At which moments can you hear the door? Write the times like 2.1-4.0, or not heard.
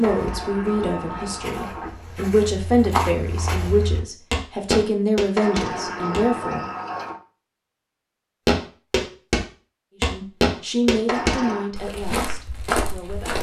0.0-1.9, 5.3-7.2, 11.1-11.7.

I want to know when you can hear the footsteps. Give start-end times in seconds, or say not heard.
0.0-6.3, 8.4-13.3.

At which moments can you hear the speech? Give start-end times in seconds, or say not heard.
0.0-6.7, 9.9-13.3.